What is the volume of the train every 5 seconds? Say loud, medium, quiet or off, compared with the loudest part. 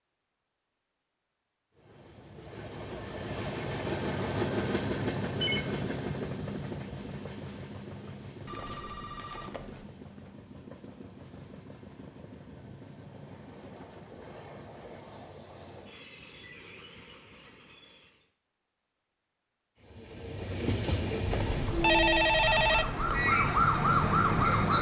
loud, loud, quiet, quiet, loud.